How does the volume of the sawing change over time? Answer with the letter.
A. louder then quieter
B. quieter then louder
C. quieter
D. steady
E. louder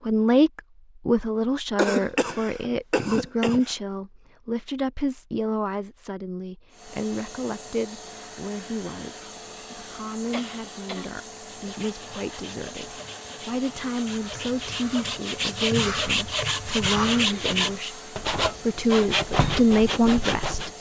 E.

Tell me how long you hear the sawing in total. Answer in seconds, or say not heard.
9 s.